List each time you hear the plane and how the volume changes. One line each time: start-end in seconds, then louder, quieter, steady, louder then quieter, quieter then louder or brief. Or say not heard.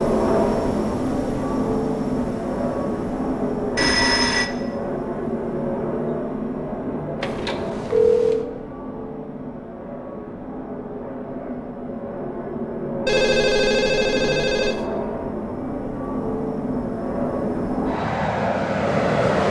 0.0-19.4 quieter then louder.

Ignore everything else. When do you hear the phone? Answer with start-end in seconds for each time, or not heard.
3.8-4.5, 7.2-8.4, 13.1-14.8.